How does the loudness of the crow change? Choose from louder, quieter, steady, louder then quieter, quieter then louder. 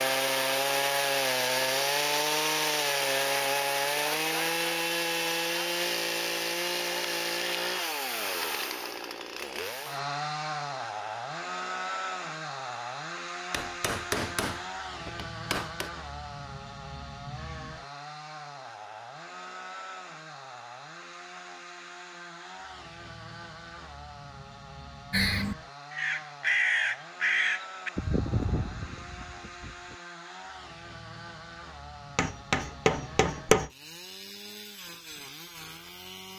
louder then quieter.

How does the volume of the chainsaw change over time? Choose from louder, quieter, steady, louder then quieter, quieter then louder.
quieter.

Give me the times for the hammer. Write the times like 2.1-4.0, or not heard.
13.5-15.9, 32.1-33.7.